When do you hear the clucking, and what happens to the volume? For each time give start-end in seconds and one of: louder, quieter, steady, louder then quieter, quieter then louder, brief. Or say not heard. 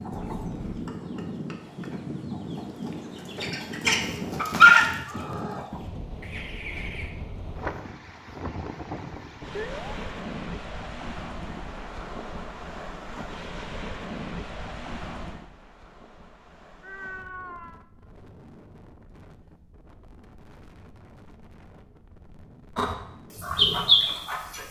0.0-7.1 louder then quieter
22.8-24.6 brief.